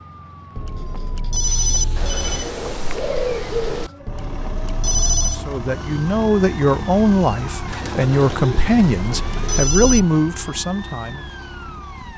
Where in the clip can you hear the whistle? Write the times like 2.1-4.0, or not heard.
not heard.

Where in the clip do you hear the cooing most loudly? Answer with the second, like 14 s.
3 s.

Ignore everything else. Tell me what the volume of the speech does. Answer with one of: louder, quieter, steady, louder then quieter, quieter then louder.
steady.